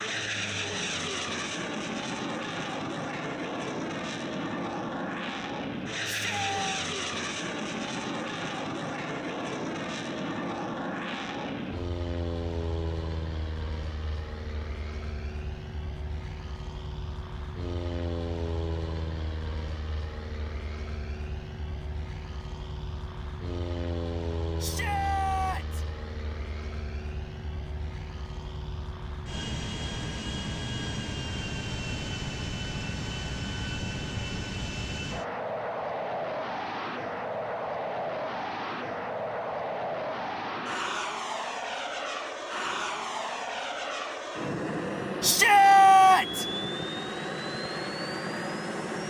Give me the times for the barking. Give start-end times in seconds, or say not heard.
not heard.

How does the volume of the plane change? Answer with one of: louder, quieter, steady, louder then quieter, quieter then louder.
quieter then louder.